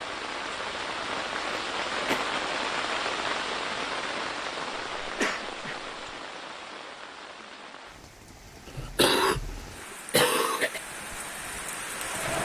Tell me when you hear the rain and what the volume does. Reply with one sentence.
The rain can be heard from 0.0 to 12.4 s, getting quieter then louder.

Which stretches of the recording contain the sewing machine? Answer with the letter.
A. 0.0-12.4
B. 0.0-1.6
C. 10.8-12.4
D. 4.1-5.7
C.